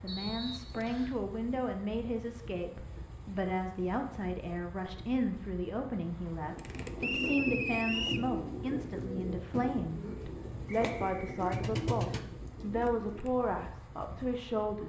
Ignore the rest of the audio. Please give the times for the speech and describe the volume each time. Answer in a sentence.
The speech can be heard from 0.0 to 14.8 s, at a steady volume.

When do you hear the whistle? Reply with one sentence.
You can hear the whistle from 0.1 to 1.1 s, from 7.0 to 8.3 s and from 10.8 to 11.6 s.